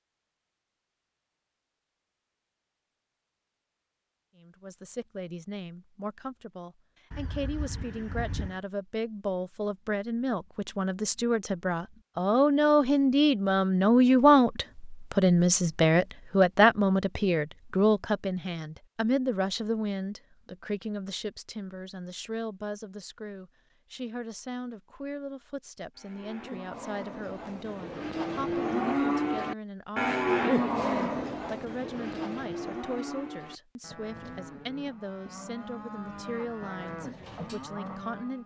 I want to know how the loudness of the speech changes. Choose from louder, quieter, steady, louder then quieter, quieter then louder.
louder then quieter.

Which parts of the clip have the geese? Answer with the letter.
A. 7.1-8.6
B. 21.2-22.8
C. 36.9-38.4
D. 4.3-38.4
A.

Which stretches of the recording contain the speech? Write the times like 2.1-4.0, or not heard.
4.3-38.4.